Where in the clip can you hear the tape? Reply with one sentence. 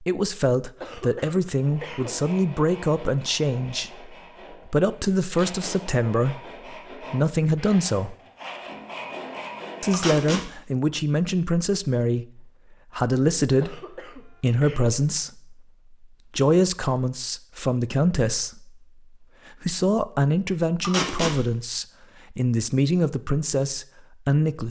You can hear the tape from 5.3 to 5.8 s, from 9.9 to 10.4 s and from 20.8 to 21.4 s.